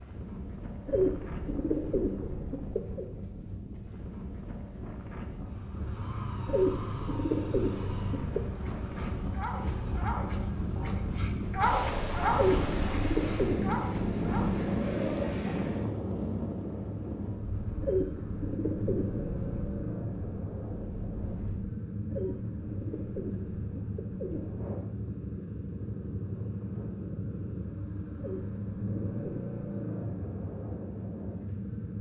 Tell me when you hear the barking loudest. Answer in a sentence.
The volume of the barking peaks at 12 seconds.